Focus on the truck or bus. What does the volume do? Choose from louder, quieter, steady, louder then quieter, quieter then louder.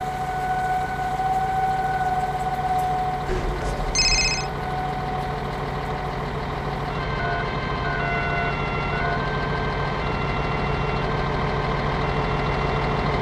louder.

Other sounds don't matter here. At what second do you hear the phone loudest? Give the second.
4 s.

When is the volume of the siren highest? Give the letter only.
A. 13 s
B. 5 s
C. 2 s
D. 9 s
C.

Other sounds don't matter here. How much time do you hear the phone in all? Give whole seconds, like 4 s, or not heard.
3 s.